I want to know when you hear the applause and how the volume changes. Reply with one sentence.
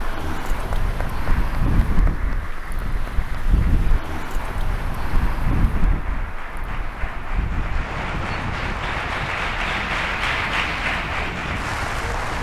The applause can be heard from 0.0 to 12.3 s, getting louder.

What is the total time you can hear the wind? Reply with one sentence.
You can hear the wind for 12 seconds altogether.